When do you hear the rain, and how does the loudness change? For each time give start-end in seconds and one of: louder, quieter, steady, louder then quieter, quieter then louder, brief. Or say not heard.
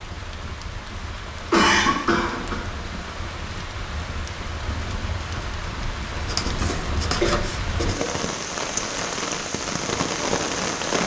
0.0-11.0 louder.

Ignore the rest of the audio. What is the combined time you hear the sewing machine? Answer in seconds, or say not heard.
not heard.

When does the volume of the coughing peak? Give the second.
2 s.